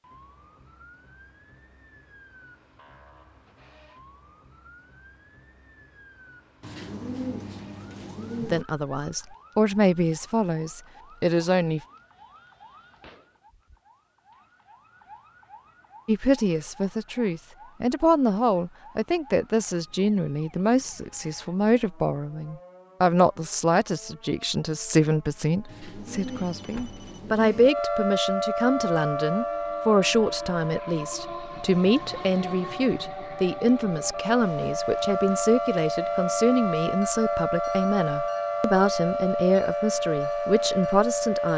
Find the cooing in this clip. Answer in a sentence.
You can hear the cooing from 6.6 to 8.7 s and from 25.6 to 27.7 s.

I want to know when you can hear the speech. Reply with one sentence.
The speech can be heard from 8.4 to 11.8 s and from 16.1 to 41.5 s.